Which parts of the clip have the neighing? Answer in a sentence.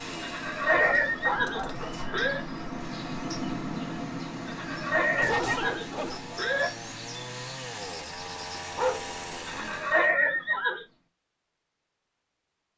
You can hear the neighing from 0.2 to 2.4 s, from 4.5 to 6.7 s and from 9.4 to 10.8 s.